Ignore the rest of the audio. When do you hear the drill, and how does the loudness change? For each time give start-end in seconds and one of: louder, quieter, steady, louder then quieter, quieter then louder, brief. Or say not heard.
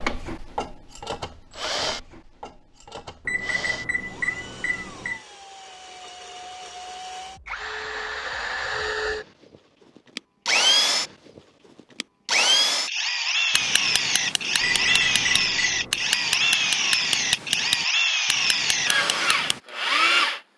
0.0-9.2 quieter then louder
10.2-11.1 brief
12.0-20.5 steady.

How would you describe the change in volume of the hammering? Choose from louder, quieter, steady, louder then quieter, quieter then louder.
louder then quieter.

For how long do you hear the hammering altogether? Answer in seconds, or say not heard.
6 s.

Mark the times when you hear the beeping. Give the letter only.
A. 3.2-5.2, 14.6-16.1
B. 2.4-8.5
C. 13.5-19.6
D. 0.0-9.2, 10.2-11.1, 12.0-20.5
A.